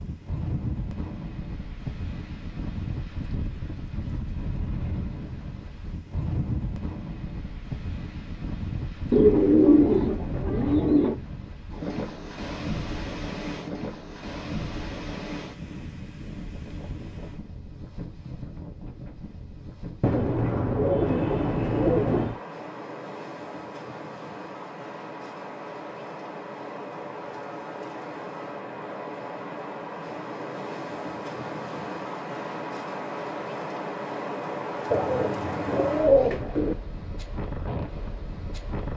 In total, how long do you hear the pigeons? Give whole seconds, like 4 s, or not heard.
6 s.